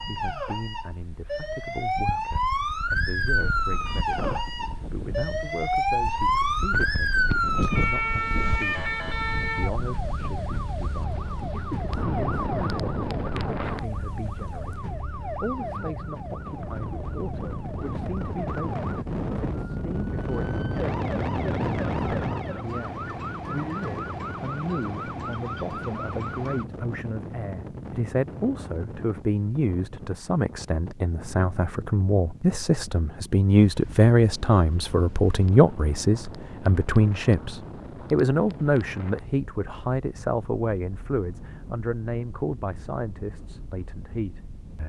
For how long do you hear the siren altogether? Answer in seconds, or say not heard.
27 s.